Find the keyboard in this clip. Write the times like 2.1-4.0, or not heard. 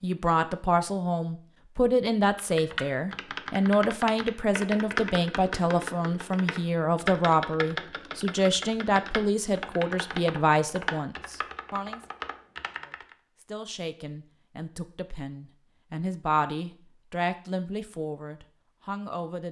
2.4-13.2.